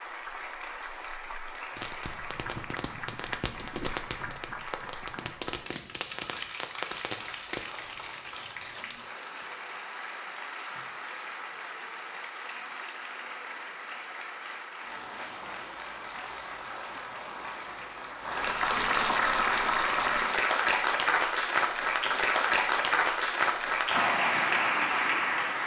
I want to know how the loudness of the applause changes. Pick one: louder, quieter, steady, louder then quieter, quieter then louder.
louder.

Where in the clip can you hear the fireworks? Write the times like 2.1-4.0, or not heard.
1.7-7.8.